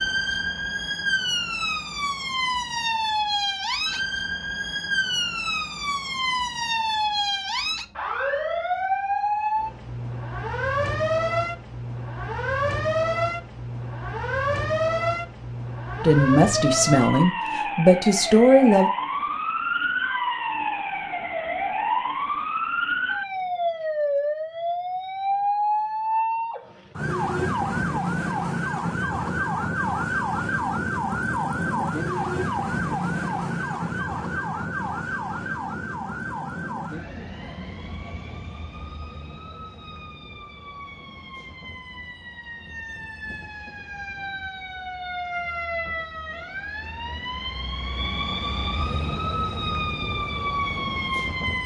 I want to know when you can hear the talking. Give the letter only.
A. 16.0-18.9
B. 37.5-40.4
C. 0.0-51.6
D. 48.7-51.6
A.